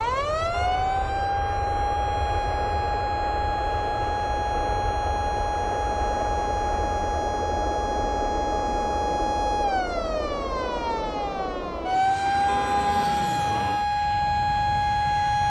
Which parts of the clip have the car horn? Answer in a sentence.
You can hear the car horn from 0.5 to 1.2 s and from 12.4 to 13.2 s.